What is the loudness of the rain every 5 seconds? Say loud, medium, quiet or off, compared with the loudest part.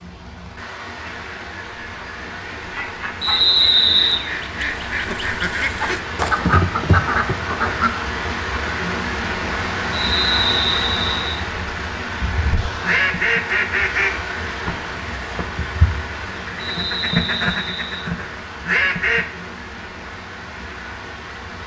medium, loud, loud, medium, medium.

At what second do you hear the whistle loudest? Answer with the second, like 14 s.
4 s.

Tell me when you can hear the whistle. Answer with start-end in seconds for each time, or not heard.
3.2-4.2, 9.9-11.4, 16.6-18.1.